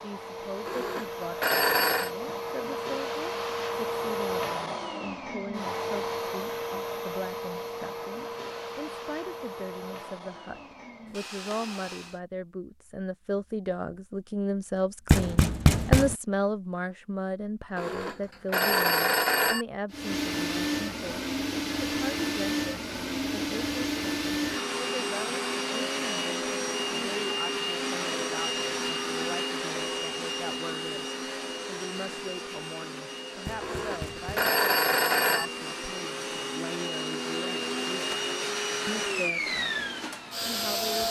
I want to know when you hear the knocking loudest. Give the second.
16 s.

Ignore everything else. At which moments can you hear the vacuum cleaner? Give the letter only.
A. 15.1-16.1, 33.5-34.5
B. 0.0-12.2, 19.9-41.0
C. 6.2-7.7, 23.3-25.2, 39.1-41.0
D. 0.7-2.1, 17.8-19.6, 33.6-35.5
B.